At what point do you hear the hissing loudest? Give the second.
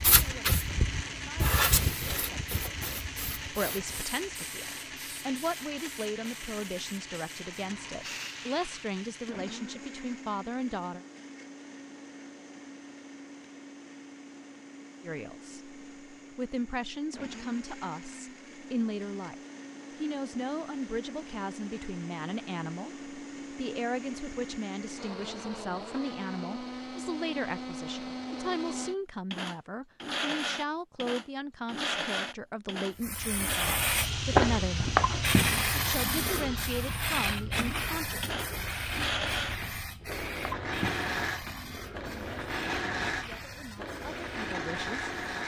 35 s.